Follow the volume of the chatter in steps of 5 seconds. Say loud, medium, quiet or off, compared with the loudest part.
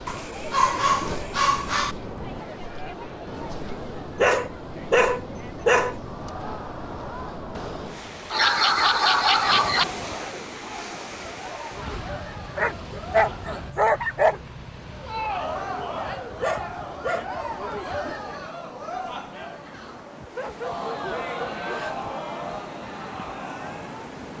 medium, medium, medium, loud, loud.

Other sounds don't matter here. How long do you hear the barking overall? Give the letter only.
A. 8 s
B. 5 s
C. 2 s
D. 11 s
D.